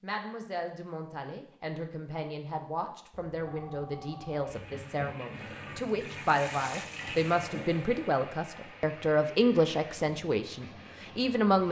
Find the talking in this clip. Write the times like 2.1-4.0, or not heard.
0.0-11.6.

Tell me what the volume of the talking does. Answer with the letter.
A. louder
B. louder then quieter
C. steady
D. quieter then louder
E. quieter
A.